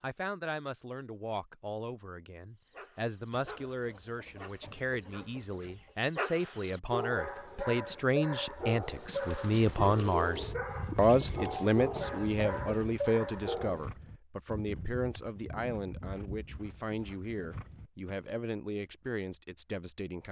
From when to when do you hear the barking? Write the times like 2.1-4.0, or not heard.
2.6-13.8.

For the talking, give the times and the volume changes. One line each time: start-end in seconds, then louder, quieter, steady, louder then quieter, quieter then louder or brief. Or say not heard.
0.0-20.2 louder then quieter.